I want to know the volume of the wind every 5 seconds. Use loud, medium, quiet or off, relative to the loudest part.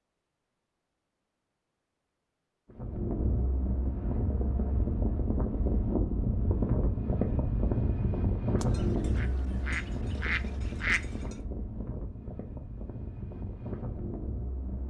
loud, loud, medium.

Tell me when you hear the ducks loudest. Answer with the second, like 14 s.
11 s.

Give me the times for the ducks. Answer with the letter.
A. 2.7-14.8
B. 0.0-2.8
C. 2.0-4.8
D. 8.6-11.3
D.